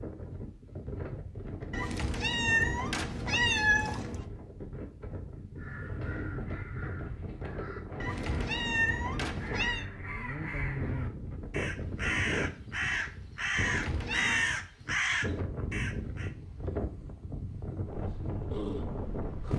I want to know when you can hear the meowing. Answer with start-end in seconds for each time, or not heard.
1.7-4.2, 8.0-9.8, 13.6-14.6.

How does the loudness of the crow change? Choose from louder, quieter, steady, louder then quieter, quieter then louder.
louder.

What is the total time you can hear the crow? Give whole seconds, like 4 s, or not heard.
11 s.